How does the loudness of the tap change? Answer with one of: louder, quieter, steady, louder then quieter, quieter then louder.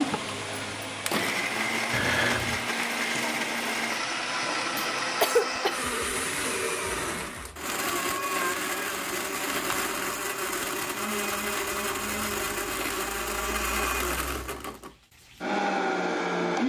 steady.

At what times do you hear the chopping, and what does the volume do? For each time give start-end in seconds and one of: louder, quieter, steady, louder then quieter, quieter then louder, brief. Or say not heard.
not heard.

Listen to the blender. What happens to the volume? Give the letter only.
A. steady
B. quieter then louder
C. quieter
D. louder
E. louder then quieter
A.